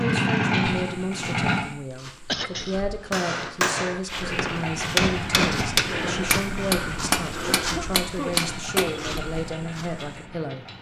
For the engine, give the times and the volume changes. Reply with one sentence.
You can hear the engine briefly from 0.0 to 1.6 s; and from 4.2 to 10.7 s, getting quieter.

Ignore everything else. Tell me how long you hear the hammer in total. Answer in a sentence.
You can hear the hammer for 6 seconds altogether.